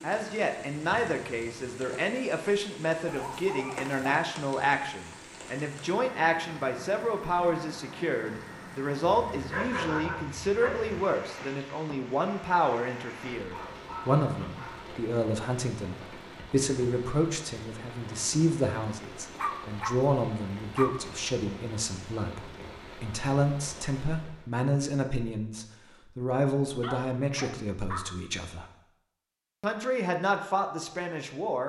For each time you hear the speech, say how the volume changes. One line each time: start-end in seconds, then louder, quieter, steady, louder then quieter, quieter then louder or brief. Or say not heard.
0.0-28.6 steady
29.6-31.6 brief.